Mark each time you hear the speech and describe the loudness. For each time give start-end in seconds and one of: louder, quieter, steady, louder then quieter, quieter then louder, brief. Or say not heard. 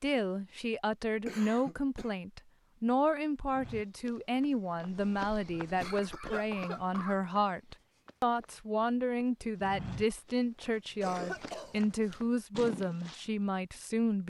0.0-14.2 steady.